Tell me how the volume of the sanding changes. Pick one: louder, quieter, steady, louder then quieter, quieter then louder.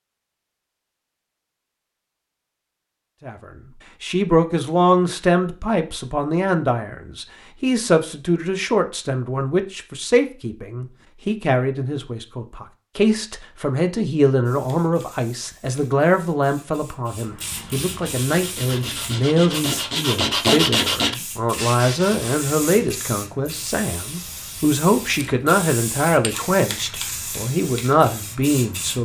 louder then quieter.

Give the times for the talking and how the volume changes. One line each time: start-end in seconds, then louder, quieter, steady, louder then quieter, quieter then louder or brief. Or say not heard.
3.2-29.0 steady.